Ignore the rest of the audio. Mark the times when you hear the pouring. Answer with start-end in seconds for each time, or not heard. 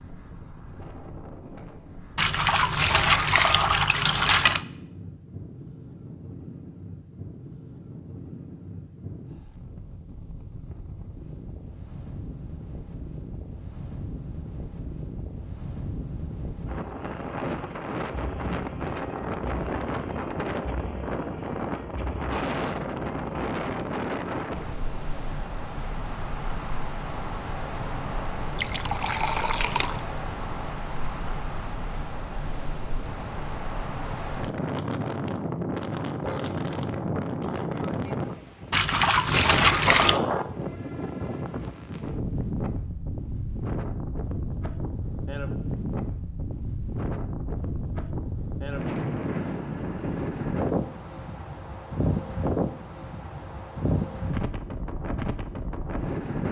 2.1-4.7, 28.6-30.0, 38.7-40.2.